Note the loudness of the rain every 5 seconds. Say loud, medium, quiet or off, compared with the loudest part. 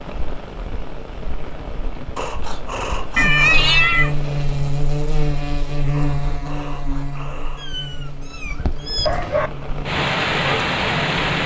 quiet, quiet, loud.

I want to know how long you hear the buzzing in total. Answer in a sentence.
The buzzing can be heard for 8 seconds in total.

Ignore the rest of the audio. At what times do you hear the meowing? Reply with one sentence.
The meowing can be heard from 3.1 to 4.1 s and from 7.5 to 9.5 s.